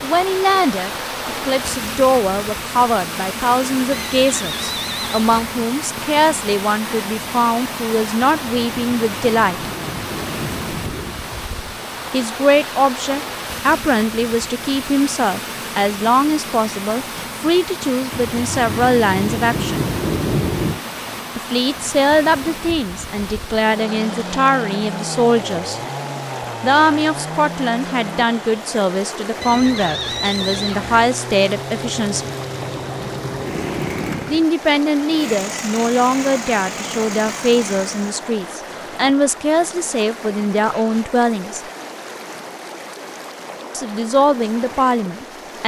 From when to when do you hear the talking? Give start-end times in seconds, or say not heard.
0.0-9.7, 12.1-19.9, 21.4-25.8, 26.6-32.3, 34.2-41.6, 43.7-45.6.